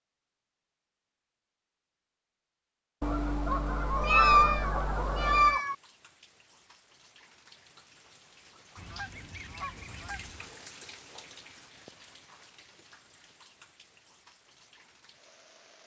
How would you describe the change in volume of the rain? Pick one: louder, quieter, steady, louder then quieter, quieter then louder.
louder then quieter.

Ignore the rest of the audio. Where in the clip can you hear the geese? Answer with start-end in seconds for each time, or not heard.
3.0-5.6, 8.8-10.5.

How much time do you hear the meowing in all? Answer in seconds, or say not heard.
2 s.